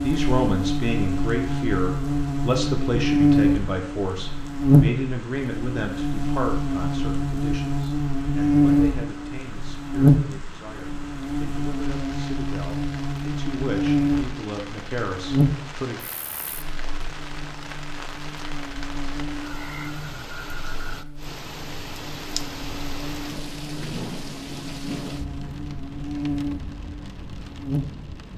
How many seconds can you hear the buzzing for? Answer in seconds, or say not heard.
28 s.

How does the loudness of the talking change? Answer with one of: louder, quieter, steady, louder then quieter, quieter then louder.
quieter then louder.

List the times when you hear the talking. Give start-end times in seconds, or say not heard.
0.0-16.0.